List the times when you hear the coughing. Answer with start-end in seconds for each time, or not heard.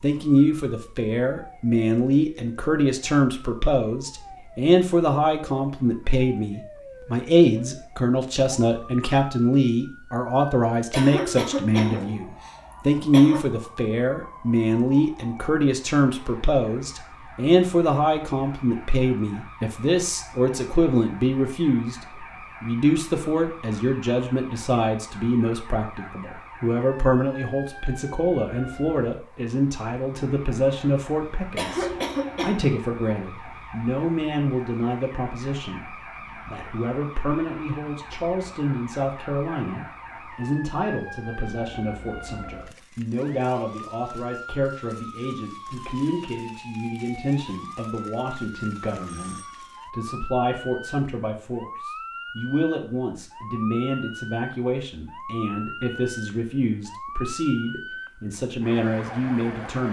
10.9-13.4, 31.6-32.6.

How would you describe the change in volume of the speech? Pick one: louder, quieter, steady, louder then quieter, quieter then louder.
quieter.